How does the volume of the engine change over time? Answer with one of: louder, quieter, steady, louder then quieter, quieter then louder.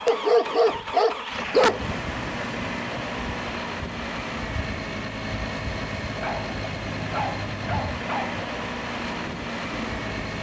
steady.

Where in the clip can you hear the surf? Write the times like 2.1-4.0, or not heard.
1.8-10.3.